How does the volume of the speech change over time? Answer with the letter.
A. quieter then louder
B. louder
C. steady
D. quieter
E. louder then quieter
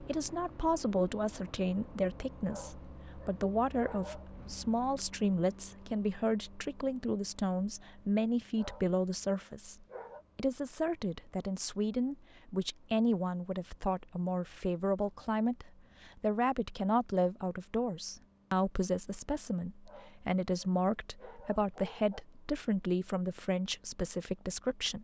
C.